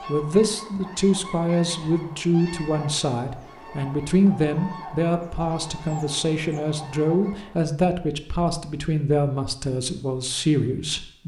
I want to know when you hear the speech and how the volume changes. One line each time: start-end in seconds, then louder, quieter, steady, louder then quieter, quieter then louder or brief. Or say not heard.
0.1-11.2 steady.